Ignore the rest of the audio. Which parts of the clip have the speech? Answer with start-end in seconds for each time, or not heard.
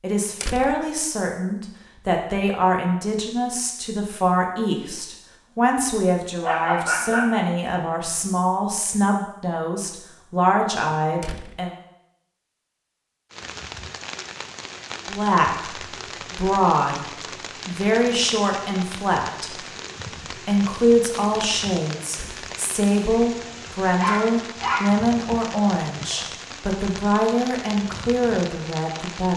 0.0-11.7, 15.1-19.6, 20.3-29.3.